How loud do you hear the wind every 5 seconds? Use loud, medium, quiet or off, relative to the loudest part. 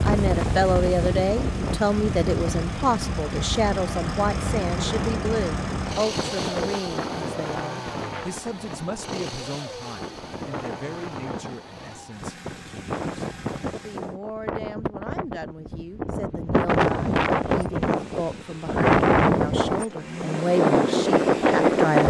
medium, quiet, quiet, loud, loud.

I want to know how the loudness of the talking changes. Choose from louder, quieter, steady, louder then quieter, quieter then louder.
quieter then louder.